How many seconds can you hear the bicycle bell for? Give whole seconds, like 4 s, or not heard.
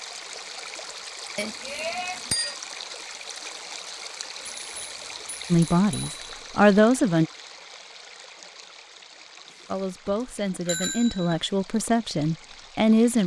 5 s.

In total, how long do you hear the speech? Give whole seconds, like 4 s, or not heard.
5 s.